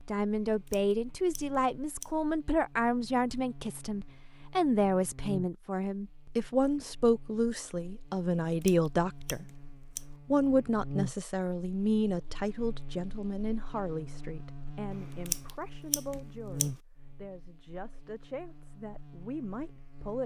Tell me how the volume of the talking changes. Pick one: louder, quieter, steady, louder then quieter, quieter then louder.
quieter.